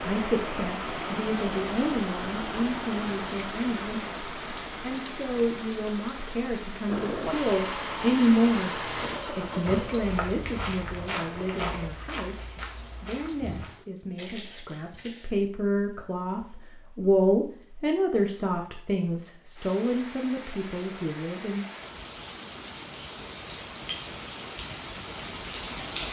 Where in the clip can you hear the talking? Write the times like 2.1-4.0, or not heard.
0.0-21.6.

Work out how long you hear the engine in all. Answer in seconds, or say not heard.
5 s.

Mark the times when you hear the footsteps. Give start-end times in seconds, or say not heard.
8.8-15.3.